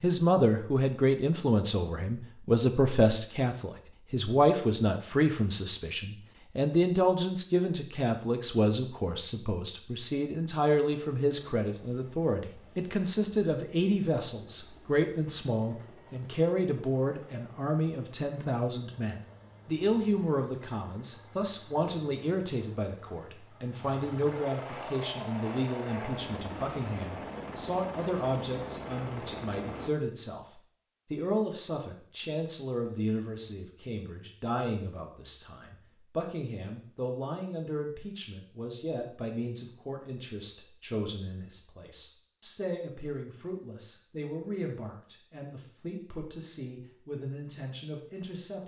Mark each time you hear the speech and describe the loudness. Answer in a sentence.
The speech can be heard from 0.0 to 48.6 s, getting quieter.